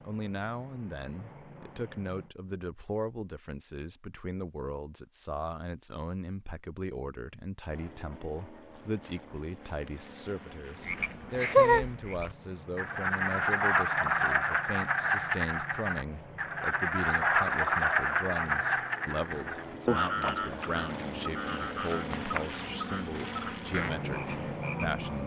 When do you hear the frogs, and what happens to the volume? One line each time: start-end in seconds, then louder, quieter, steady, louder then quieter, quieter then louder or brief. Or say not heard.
10.8-25.2 quieter.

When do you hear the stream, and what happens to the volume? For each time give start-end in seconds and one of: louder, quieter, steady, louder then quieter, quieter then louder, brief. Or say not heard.
not heard.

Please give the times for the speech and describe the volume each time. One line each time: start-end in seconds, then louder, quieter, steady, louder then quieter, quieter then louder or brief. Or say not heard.
0.0-25.2 steady.